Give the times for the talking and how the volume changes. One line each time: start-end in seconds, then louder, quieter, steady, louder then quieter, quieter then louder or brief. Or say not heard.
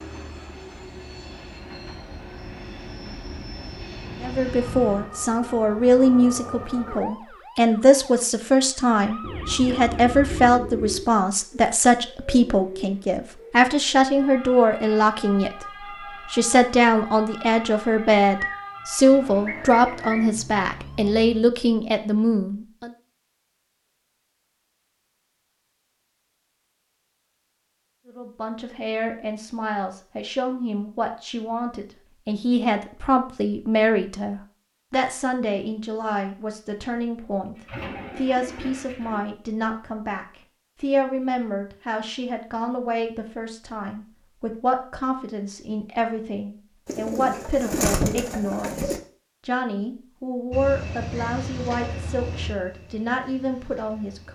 4.2-22.9 steady
28.1-54.3 steady.